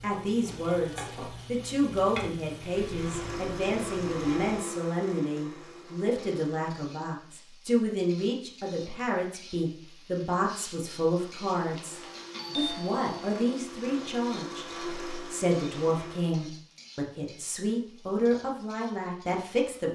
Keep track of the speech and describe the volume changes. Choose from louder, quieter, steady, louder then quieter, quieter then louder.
steady.